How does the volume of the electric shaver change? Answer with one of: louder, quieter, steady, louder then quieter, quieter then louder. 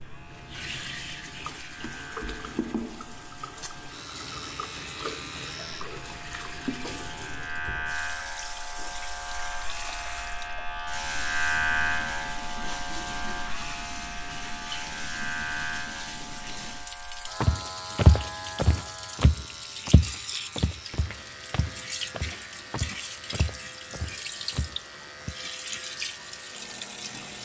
louder then quieter.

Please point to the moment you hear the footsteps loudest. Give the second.
18 s.